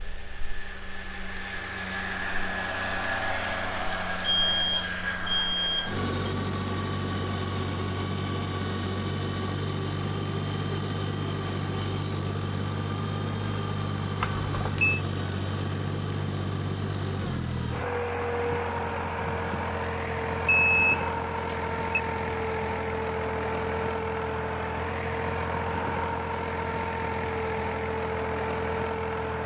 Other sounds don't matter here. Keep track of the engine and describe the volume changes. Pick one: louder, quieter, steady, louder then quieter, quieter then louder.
steady.